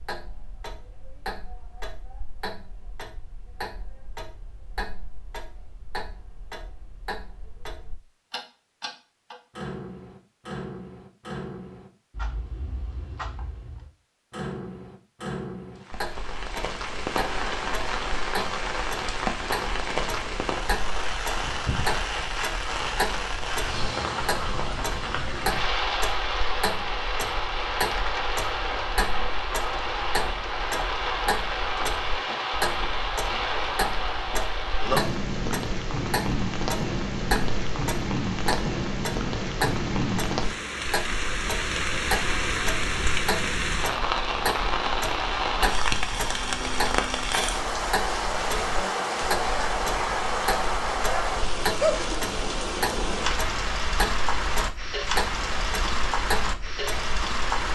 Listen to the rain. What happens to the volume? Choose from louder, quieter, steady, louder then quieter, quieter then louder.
steady.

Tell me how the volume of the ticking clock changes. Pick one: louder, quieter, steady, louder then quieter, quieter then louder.
louder.